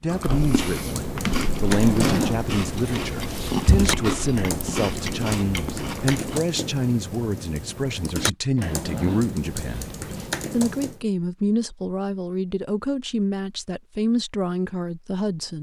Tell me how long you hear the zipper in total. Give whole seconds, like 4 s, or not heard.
4 s.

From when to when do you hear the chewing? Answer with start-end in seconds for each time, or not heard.
0.1-6.4.